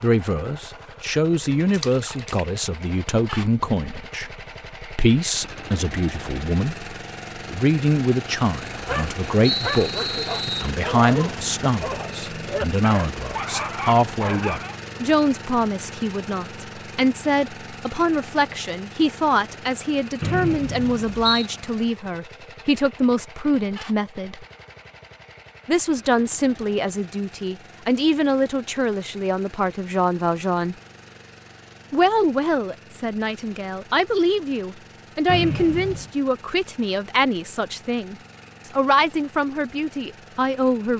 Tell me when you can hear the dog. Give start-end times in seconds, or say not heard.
8.7-14.8.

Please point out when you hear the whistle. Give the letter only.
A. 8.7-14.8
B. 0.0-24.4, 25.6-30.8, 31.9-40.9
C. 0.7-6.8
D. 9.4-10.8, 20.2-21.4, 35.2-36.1
D.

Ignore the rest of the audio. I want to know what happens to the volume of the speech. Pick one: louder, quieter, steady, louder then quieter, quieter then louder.
steady.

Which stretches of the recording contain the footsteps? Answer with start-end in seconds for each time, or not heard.
not heard.